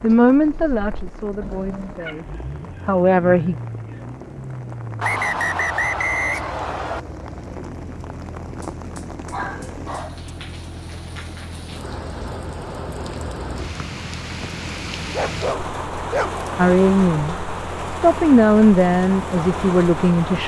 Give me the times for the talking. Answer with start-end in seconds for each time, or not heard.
0.0-3.5, 16.6-20.4.